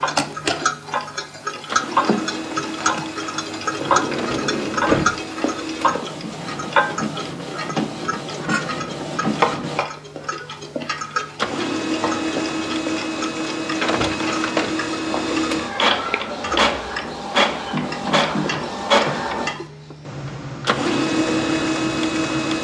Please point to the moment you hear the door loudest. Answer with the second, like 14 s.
5 s.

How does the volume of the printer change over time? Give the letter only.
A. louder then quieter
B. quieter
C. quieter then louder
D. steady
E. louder
E.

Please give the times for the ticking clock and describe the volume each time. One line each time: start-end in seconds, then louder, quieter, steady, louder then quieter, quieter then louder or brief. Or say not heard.
0.0-22.5 quieter.